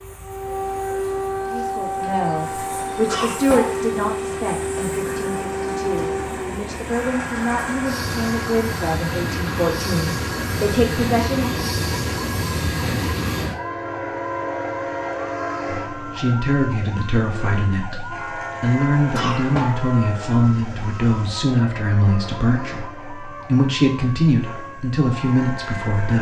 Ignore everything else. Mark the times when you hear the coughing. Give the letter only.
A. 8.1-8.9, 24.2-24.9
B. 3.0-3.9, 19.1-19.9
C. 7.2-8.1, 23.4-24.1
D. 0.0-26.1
B.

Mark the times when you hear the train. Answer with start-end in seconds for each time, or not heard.
0.0-26.1.